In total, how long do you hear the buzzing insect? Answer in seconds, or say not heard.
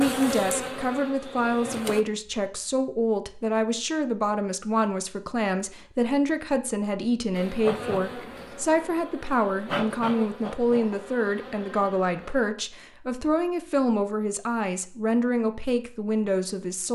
7 s.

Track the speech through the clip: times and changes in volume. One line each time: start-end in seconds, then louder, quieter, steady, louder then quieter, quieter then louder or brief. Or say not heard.
0.0-16.8 steady.